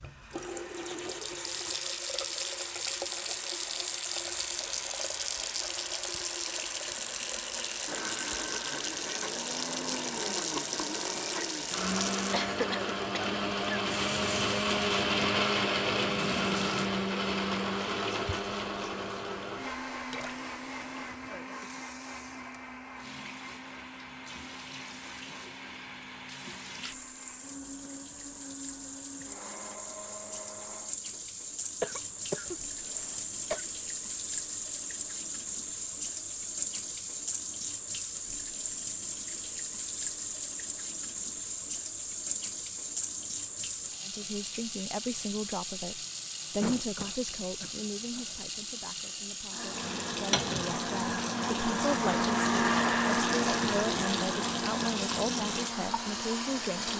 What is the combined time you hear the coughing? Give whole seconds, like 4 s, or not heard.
5 s.